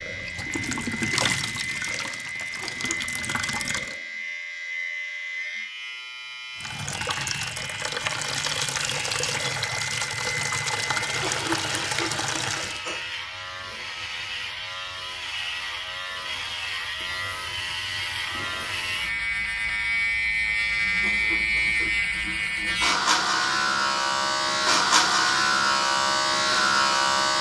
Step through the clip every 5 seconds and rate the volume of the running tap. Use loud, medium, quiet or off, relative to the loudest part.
loud, loud, loud, off, off, off.